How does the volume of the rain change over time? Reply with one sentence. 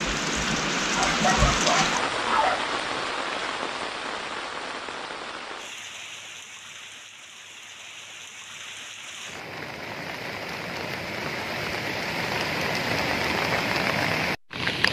The loudness of the rain goes down, then up.